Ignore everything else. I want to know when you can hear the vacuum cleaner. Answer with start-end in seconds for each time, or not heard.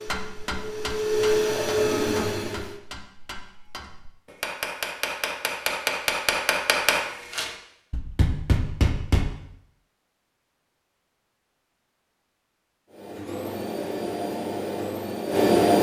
0.0-2.8, 12.9-15.7.